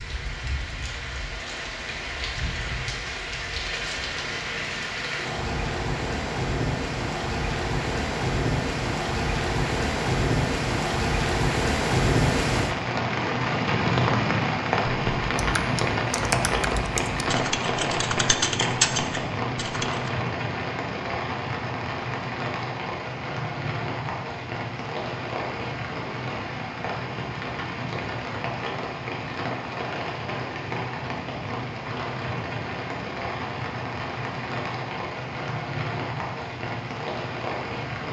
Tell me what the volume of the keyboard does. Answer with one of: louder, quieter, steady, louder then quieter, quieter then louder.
louder then quieter.